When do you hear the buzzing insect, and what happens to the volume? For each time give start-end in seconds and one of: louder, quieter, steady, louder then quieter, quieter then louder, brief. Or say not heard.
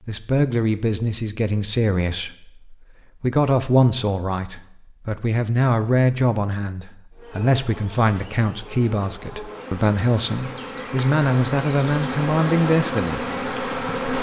7.1-14.1 louder.